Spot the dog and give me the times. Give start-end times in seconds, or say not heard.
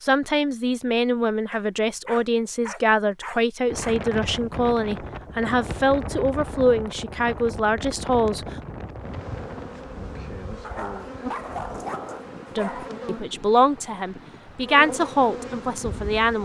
1.5-4.0, 10.6-12.9.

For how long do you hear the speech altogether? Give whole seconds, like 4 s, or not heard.
12 s.